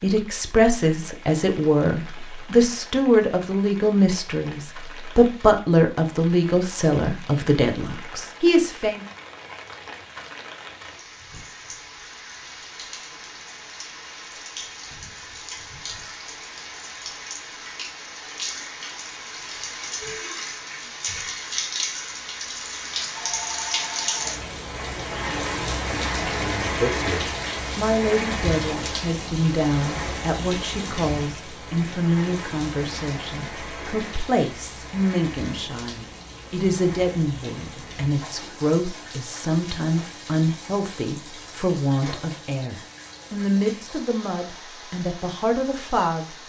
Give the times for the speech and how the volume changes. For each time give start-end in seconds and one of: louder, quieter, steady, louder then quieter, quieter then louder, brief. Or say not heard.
0.0-9.1 steady
26.3-46.4 steady.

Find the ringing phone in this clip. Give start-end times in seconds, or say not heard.
23.1-24.3.